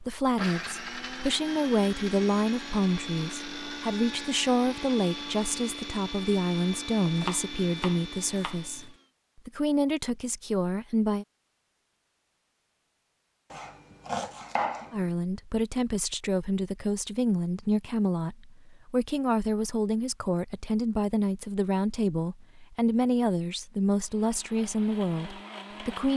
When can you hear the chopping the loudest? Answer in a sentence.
The volume of the chopping peaks at 15 seconds.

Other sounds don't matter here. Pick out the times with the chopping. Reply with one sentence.
The chopping can be heard from 7.2 to 8.9 s and from 13.5 to 15.1 s.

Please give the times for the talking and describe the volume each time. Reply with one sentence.
The talking can be heard from 0.0 to 11.2 s, at a steady volume; and from 14.9 to 26.1 s, at a steady volume.